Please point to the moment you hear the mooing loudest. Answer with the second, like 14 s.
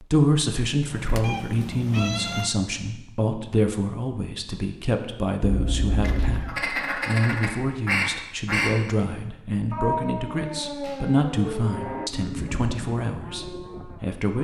12 s.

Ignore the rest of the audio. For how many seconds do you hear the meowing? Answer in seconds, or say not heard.
5 s.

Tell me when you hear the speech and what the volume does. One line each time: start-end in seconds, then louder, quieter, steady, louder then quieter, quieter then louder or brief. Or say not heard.
0.0-14.3 steady.